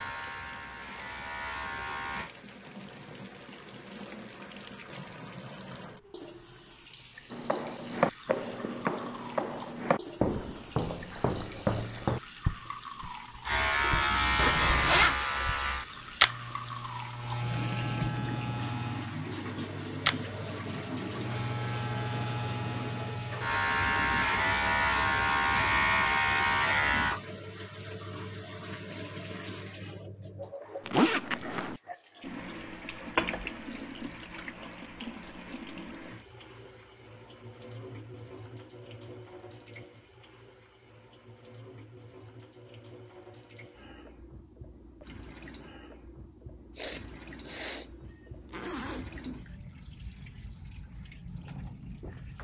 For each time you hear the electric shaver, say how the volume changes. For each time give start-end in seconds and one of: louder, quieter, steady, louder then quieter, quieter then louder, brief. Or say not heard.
0.0-2.3 brief
13.4-27.2 quieter then louder.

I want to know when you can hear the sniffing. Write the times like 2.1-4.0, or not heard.
46.7-47.9.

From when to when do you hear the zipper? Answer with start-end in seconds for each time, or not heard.
14.3-15.2, 30.9-31.8, 48.0-49.5.